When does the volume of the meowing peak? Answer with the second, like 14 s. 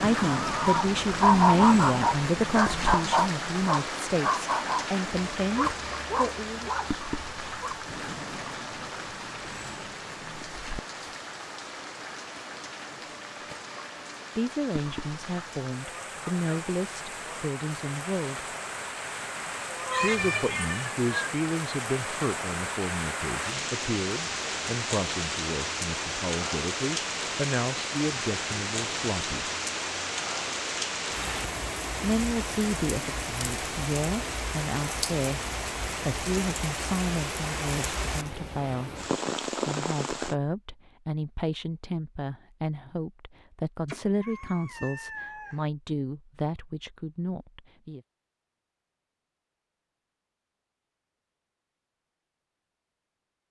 20 s.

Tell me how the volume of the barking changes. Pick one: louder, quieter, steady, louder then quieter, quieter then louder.
quieter.